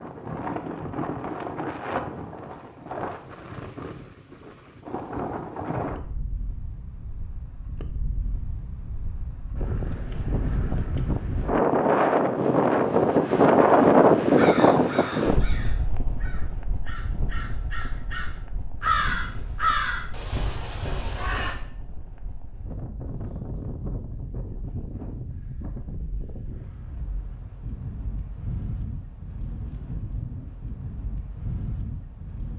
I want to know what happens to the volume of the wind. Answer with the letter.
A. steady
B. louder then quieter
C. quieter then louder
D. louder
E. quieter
B.